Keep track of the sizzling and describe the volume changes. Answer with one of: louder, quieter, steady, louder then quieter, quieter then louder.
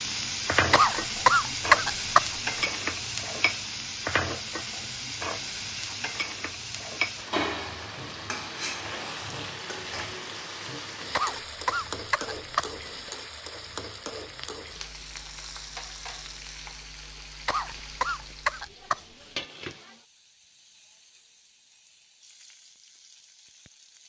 quieter.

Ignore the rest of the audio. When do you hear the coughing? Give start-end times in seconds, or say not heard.
0.7-2.7, 11.1-13.1, 17.4-19.4.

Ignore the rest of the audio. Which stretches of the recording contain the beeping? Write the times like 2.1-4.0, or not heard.
not heard.